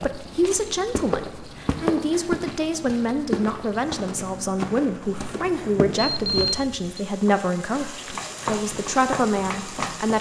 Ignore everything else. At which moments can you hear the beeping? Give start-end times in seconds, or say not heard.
6.1-7.0.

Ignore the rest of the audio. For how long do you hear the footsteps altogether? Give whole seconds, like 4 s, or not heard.
8 s.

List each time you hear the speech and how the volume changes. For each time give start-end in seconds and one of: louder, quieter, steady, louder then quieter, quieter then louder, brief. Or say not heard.
0.0-10.1 steady.